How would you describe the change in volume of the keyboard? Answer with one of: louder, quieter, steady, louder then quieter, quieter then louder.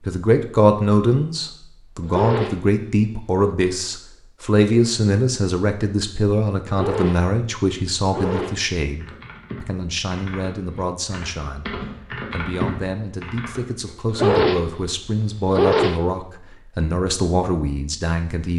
louder then quieter.